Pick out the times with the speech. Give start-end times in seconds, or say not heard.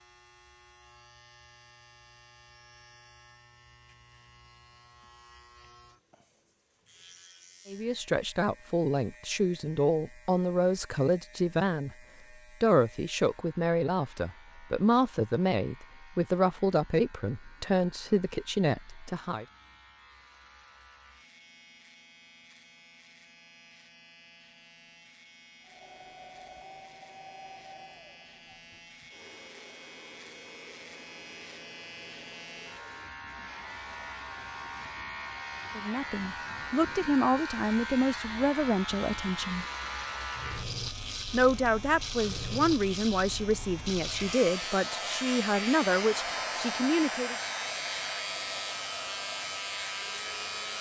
7.7-11.9, 12.6-19.4, 35.8-39.6, 41.3-47.4.